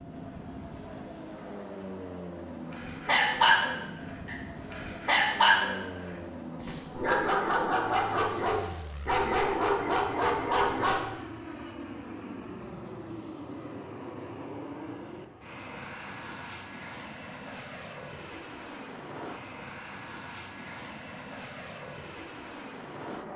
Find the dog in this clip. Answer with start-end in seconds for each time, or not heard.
2.7-11.1.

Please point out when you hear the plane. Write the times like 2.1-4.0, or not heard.
0.0-23.3.